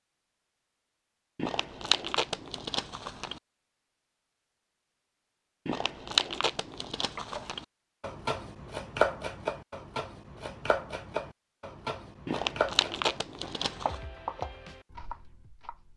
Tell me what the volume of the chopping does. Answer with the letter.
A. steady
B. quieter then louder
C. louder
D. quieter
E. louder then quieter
D.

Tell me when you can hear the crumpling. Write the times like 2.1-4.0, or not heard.
1.4-3.4, 5.7-7.7, 12.2-14.0.